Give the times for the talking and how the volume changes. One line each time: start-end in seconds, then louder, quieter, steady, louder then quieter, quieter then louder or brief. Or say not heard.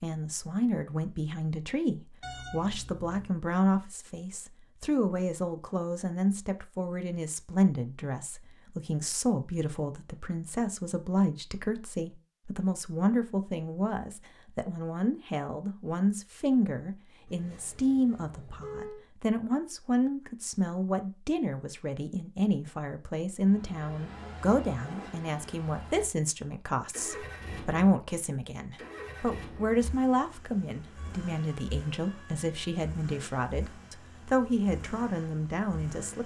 0.0-36.2 steady.